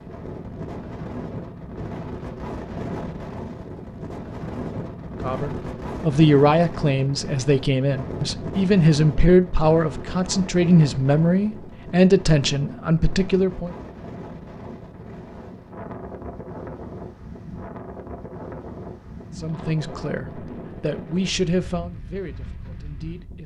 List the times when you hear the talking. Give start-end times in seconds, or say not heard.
5.2-13.8, 19.4-23.4.